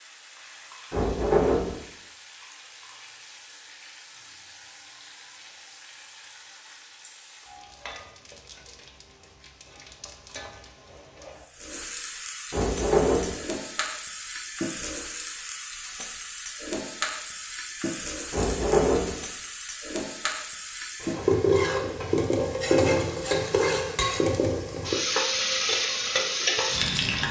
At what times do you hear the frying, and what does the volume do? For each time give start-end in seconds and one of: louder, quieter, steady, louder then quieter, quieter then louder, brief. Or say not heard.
0.0-27.2 louder.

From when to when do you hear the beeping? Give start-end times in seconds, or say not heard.
not heard.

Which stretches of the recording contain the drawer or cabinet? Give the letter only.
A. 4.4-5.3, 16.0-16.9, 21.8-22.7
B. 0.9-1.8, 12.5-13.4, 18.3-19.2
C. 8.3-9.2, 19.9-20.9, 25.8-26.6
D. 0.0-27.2
B.